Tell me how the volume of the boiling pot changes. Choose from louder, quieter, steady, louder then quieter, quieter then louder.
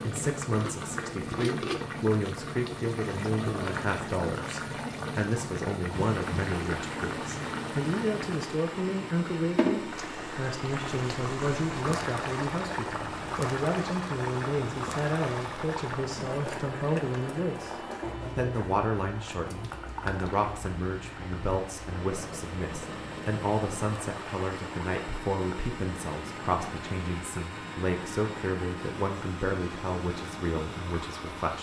quieter.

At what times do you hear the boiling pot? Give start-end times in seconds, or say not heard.
0.0-31.5.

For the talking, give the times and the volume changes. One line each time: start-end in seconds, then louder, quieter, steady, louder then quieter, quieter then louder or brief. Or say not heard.
0.0-31.5 steady.